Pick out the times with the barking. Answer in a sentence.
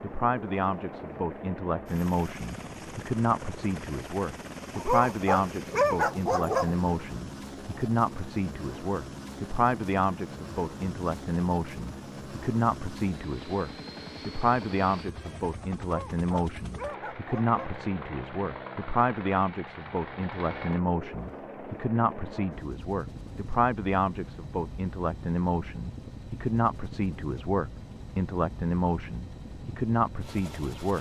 The barking can be heard from 4.8 to 6.8 s and from 15.8 to 17.8 s.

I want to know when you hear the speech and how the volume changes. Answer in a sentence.
The speech can be heard from 0.0 to 30.9 s, at a steady volume.